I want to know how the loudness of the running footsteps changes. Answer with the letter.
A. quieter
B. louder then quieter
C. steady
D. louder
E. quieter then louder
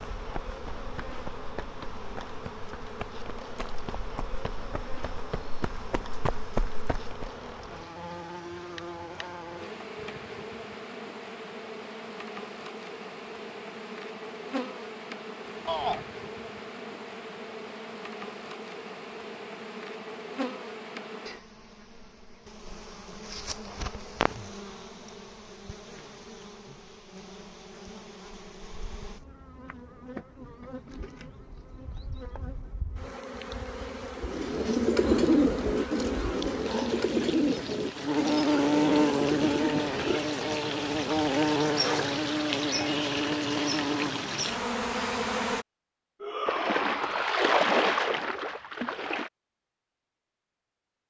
D.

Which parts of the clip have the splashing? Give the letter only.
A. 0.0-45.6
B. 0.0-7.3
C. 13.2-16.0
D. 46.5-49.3
D.